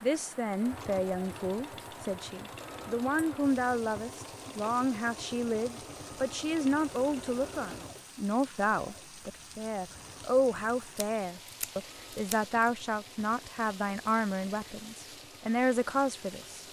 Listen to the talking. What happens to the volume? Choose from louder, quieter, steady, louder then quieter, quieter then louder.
steady.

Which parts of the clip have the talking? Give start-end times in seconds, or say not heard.
0.0-16.6.